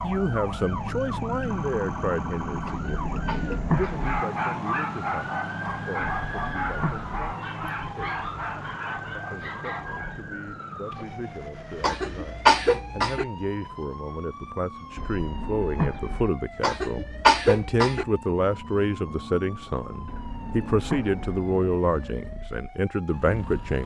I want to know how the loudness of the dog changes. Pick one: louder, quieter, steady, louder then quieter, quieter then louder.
quieter.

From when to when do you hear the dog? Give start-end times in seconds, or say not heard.
3.7-10.2.